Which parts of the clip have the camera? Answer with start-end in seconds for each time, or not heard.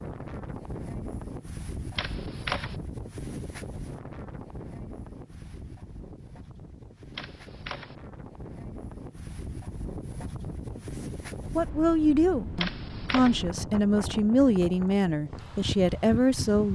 1.9-2.8, 7.2-8.0, 12.6-13.4.